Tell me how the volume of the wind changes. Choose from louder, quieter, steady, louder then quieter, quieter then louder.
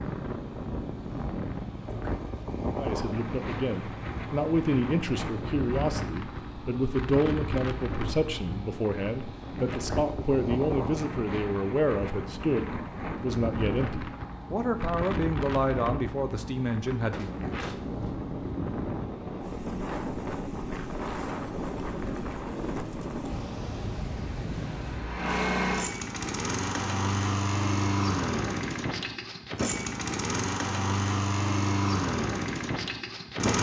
steady.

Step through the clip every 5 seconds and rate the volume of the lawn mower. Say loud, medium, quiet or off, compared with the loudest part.
quiet, quiet, quiet, quiet, quiet, loud, loud.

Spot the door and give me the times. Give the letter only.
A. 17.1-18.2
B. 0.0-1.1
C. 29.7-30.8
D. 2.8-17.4
A.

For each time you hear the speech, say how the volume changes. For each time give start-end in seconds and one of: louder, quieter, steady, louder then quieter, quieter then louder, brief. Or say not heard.
2.8-17.4 steady.